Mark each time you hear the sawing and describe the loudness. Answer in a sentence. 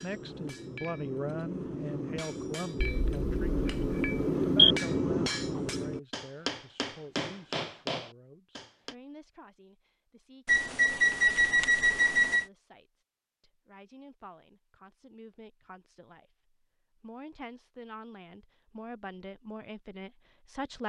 You can't hear the sawing here.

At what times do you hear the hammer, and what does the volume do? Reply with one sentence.
You can hear the hammer from 0.0 to 8.9 s, getting louder then quieter.